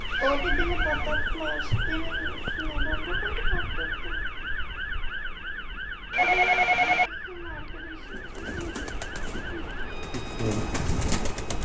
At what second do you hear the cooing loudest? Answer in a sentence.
The loudest moment of the cooing is at 11 seconds.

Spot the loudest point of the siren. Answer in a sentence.
The volume of the siren peaks at 1 second.